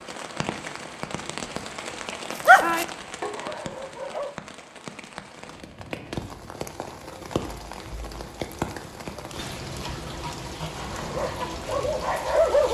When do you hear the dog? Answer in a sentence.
The dog can be heard from 2.4 to 4.3 s and from 11.0 to 12.7 s.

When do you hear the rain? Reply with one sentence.
The rain can be heard from 0.0 to 12.7 s.